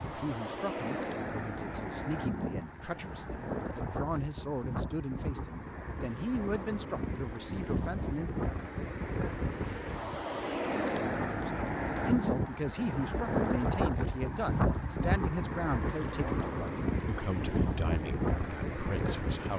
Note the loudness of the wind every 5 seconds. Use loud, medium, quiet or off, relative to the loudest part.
medium, medium, loud, loud.